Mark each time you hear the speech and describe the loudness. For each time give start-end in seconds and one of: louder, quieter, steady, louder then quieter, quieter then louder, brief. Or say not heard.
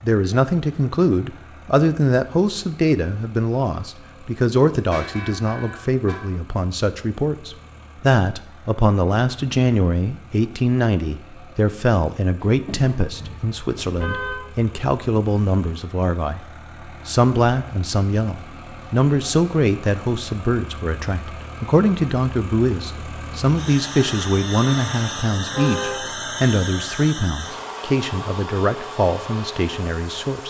0.0-30.4 steady.